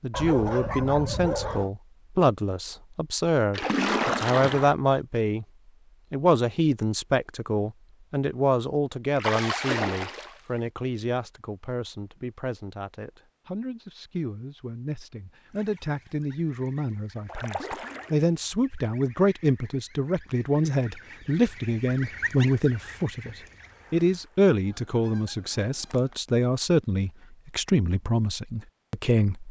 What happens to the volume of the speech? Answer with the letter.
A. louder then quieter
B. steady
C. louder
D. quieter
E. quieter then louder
E.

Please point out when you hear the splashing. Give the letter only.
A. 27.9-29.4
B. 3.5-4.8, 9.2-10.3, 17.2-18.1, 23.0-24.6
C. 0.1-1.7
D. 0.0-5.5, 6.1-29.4
B.